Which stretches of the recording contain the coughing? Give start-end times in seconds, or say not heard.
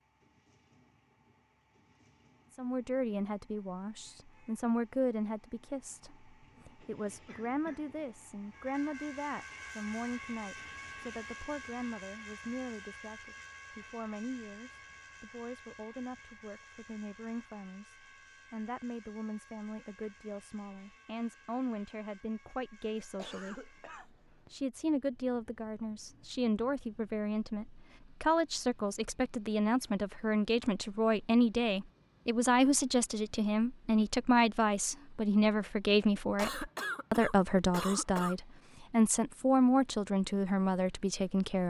7.2-7.8, 23.0-24.5, 36.4-38.4.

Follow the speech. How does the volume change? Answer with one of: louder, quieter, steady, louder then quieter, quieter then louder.
quieter then louder.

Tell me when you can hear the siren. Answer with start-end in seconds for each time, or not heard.
not heard.